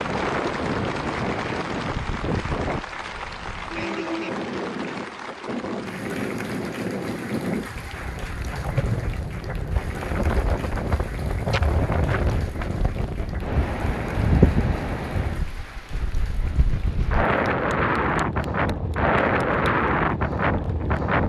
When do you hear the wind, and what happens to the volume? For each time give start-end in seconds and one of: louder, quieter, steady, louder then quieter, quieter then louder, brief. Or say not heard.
0.0-21.2 louder.